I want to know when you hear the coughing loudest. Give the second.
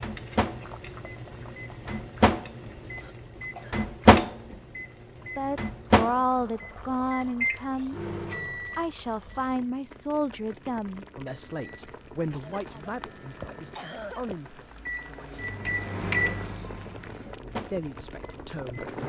14 s.